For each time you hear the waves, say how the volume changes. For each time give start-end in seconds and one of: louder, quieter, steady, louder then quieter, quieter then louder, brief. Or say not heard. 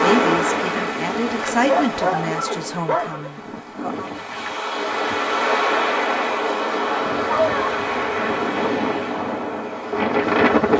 0.0-10.7 quieter then louder.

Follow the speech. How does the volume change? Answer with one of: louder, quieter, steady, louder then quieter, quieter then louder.
louder then quieter.